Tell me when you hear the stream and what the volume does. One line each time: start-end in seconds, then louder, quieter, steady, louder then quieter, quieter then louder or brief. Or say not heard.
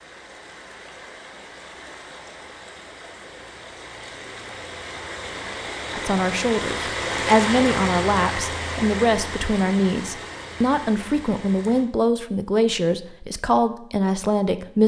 0.0-11.9 louder then quieter.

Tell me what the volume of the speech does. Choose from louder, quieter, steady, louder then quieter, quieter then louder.
steady.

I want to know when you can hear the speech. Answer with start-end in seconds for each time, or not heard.
5.9-14.8.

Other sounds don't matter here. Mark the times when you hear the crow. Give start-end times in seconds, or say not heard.
not heard.